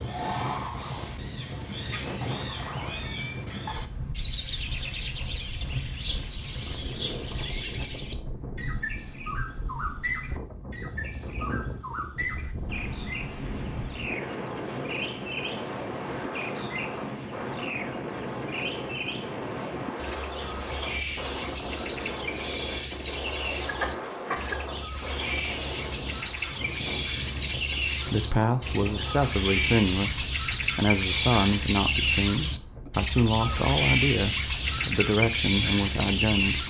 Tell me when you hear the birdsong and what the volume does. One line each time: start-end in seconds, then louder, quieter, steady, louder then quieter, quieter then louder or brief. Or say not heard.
0.0-36.6 louder.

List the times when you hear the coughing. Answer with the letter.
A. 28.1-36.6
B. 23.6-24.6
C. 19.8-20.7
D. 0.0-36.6
B.